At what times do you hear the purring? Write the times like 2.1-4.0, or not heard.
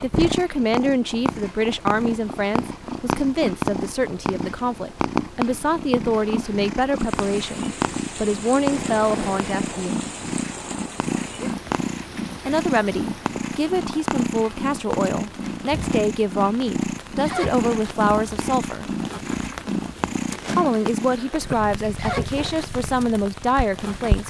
0.0-24.2.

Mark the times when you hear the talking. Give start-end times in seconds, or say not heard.
0.0-10.0, 12.4-18.9, 20.6-24.2.